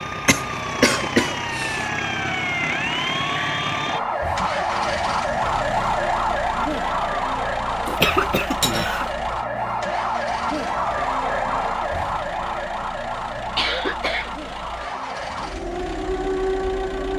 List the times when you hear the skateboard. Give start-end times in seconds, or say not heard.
not heard.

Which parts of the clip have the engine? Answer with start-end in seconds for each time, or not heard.
0.0-17.1.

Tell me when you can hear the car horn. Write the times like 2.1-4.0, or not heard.
not heard.